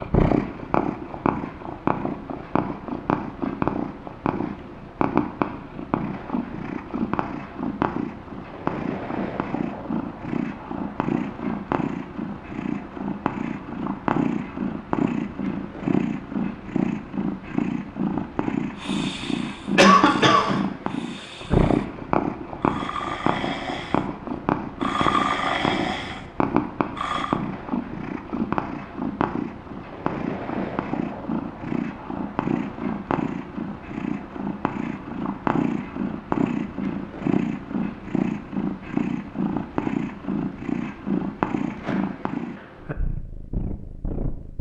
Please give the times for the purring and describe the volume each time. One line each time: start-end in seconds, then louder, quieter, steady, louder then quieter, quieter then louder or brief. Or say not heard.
0.0-44.5 steady.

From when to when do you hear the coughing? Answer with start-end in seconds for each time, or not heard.
19.8-20.6.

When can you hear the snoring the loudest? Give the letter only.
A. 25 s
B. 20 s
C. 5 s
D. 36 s
A.